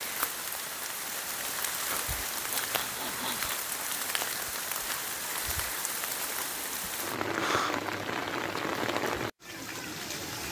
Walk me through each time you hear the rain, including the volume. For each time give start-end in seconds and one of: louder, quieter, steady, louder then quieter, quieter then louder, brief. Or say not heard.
0.0-10.4 steady.